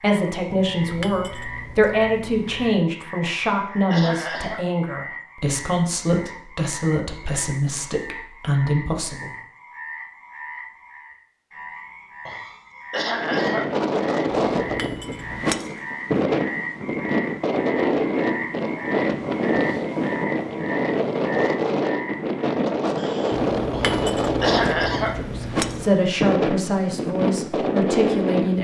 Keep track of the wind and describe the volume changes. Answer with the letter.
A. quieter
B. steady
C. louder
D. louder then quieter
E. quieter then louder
B.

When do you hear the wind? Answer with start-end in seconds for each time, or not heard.
13.1-28.5.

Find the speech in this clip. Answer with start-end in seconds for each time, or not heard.
0.0-9.3, 25.1-28.5.